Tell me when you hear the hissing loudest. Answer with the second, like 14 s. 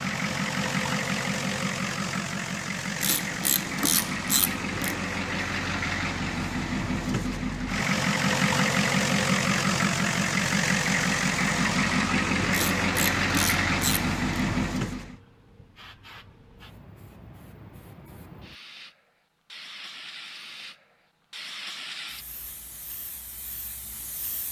22 s.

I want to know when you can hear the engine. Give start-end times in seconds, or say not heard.
0.0-15.2.